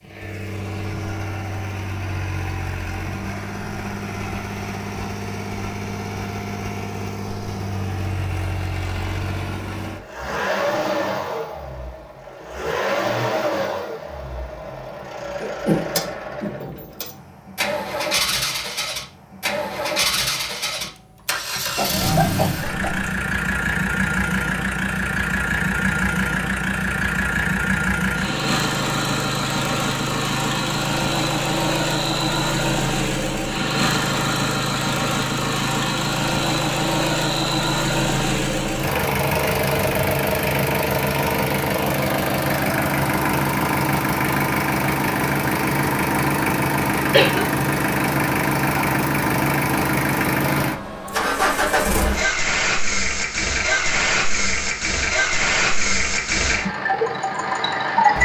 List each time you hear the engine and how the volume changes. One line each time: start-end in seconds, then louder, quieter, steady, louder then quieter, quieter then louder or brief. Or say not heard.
0.0-58.2 louder.